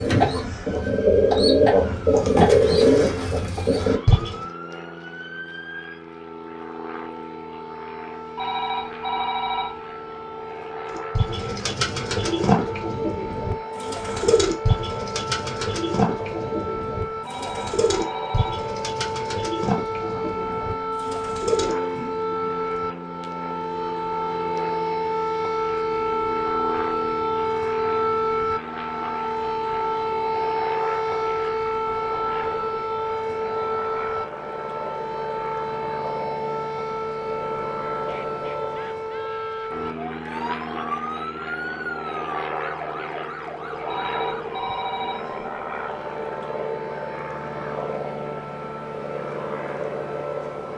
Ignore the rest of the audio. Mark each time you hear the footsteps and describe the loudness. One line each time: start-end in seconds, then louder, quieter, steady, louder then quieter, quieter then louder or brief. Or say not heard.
not heard.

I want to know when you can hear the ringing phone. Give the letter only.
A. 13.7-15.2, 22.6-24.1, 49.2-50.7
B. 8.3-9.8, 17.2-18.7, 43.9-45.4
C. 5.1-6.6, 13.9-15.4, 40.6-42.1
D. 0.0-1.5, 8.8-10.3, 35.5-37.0
B.